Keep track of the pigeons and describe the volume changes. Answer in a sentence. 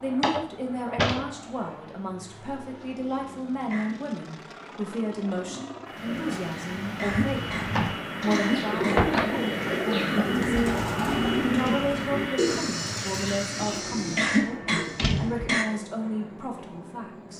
The loudness of the pigeons goes up, then down.